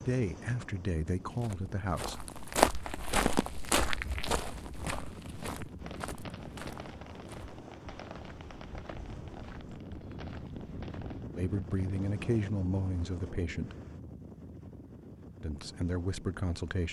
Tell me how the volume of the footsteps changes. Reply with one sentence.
The loudness of the footsteps goes down.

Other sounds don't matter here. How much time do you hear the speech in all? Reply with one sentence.
The speech can be heard for 6 seconds in total.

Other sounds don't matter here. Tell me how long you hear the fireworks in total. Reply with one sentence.
The fireworks can be heard for 6 seconds in total.